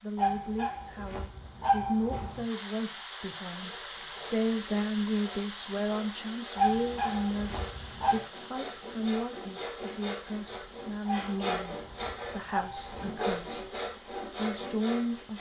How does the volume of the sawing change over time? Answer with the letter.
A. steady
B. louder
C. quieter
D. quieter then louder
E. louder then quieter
B.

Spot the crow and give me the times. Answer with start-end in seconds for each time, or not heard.
not heard.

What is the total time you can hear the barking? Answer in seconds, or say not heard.
6 s.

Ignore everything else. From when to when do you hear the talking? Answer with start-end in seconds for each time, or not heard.
0.0-15.3.